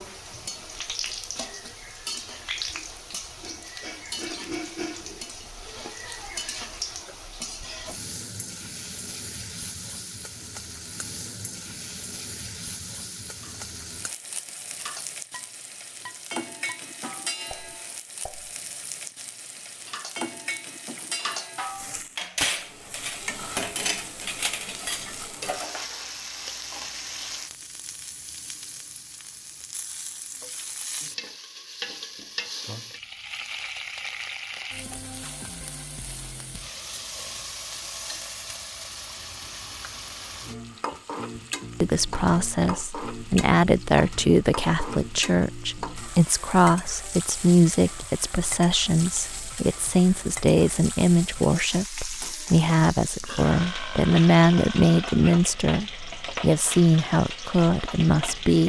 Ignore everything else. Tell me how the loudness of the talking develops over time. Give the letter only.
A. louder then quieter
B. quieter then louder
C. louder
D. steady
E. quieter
D.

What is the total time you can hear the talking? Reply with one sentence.
The talking can be heard for 17 seconds in total.